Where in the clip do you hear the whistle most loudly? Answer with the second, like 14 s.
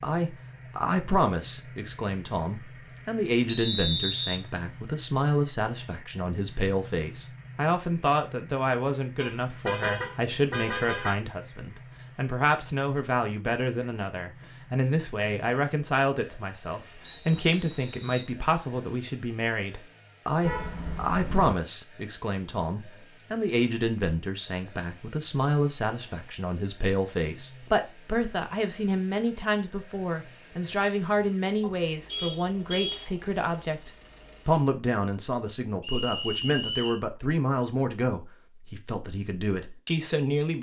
4 s.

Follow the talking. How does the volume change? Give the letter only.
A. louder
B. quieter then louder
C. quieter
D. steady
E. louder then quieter
D.